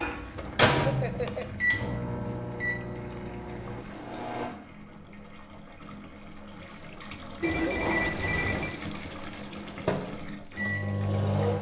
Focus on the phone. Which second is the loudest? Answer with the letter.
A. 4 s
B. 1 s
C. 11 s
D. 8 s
D.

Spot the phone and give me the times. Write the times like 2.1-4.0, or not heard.
0.3-1.5, 7.4-8.8.